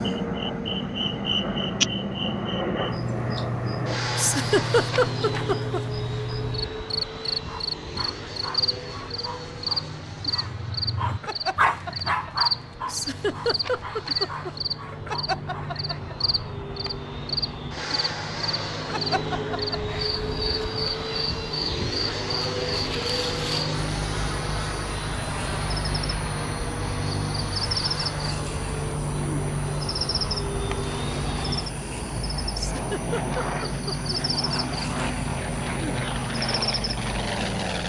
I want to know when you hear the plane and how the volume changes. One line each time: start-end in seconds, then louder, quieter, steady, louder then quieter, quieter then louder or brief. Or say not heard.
0.0-37.8 quieter then louder.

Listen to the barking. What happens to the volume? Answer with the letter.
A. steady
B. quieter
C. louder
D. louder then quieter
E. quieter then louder
D.